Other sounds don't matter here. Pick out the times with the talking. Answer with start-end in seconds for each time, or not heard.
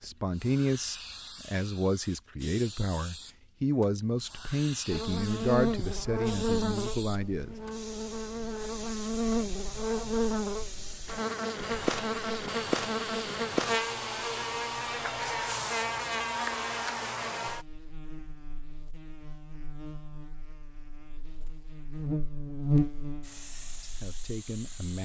0.0-7.5, 23.8-25.0.